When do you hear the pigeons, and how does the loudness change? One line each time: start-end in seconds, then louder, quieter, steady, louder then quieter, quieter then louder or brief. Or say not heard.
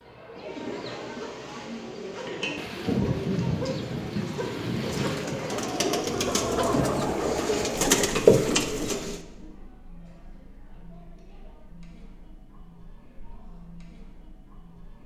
0.3-9.2 louder.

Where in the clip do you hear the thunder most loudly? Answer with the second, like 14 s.
3 s.